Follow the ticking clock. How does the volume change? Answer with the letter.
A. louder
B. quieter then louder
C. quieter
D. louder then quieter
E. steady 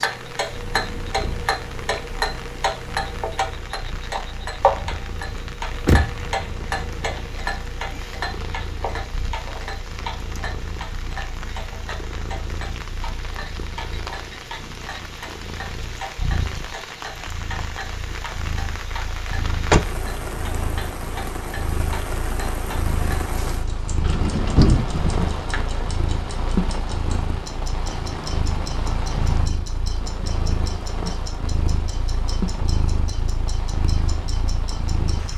C.